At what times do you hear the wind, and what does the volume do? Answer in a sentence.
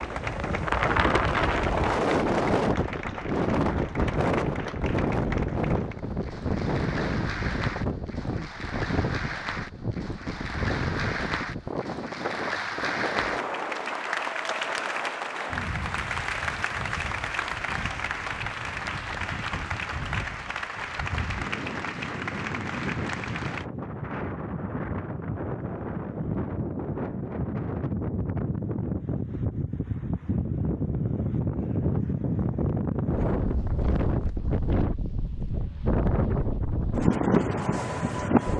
You can hear the wind from 0.0 to 38.5 s, getting quieter then louder.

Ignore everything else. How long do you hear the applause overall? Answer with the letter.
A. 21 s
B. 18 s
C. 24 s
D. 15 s
C.